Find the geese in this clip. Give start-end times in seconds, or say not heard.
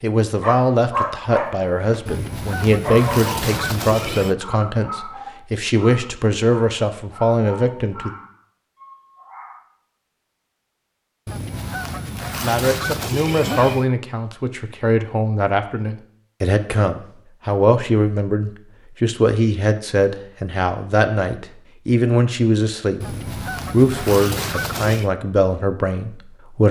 2.0-4.3, 11.2-13.9, 23.0-25.1.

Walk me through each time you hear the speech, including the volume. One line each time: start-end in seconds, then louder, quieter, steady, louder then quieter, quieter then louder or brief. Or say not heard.
0.0-8.2 steady
12.4-26.6 steady.